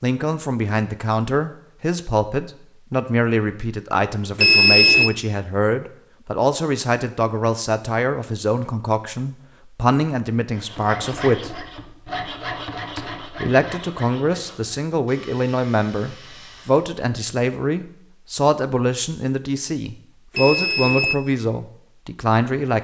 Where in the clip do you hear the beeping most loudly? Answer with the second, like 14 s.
5 s.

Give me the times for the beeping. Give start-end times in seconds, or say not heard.
4.3-5.1, 20.4-21.1.